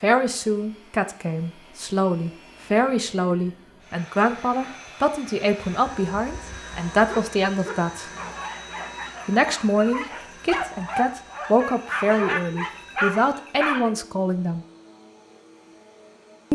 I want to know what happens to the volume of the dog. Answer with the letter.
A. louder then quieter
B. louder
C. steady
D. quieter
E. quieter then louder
B.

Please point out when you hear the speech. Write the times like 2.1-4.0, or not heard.
0.0-8.1, 9.2-14.7.